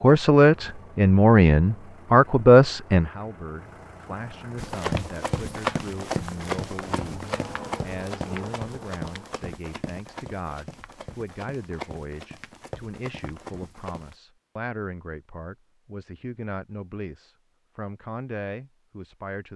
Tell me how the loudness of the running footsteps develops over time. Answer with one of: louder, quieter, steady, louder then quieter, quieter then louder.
quieter.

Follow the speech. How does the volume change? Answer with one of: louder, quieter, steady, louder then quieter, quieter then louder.
quieter.